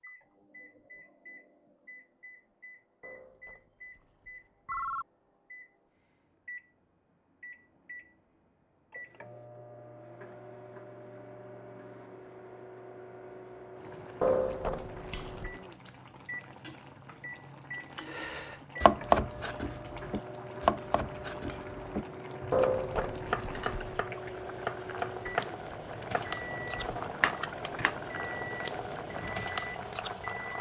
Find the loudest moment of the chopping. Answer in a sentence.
The volume of the chopping peaks at 19 seconds.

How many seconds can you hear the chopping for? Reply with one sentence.
You can hear the chopping for 10 seconds altogether.